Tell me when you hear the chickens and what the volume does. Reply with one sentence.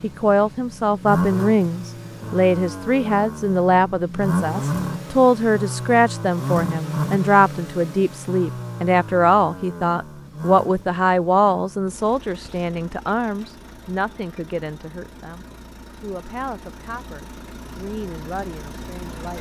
You can't hear the chickens here.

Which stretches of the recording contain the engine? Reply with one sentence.
You can hear the engine from 0.0 to 19.3 s.